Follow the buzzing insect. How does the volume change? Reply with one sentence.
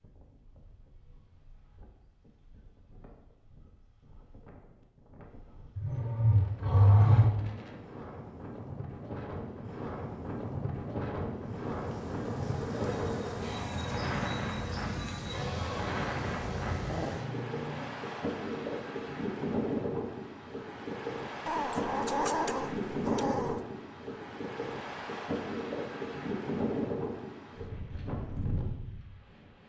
The volume of the buzzing insect stays about the same.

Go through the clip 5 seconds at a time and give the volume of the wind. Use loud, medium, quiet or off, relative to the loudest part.
quiet, medium, loud, loud, loud, loud.